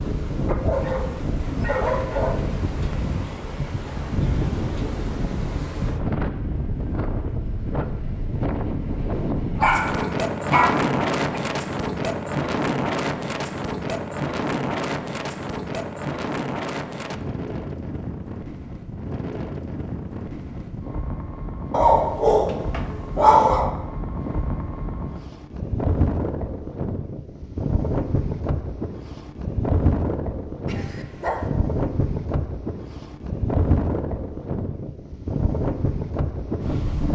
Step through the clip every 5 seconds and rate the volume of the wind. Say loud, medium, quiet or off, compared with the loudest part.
loud, loud, loud, medium, medium, loud, loud, loud.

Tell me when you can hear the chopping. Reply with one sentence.
You can't hear the chopping here.